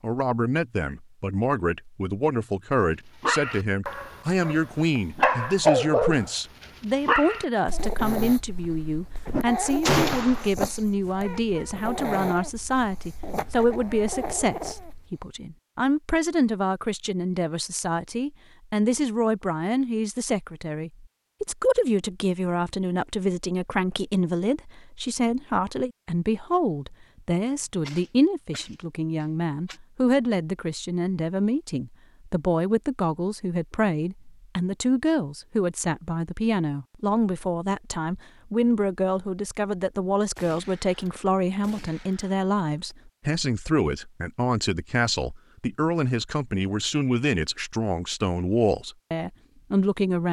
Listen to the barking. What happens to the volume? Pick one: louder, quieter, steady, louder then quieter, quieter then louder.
quieter.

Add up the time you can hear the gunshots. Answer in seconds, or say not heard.
5 s.